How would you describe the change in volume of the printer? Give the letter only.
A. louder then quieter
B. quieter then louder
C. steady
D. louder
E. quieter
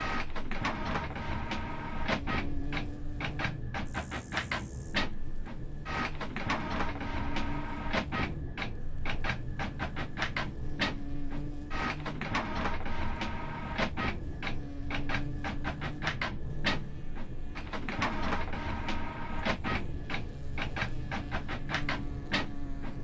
C.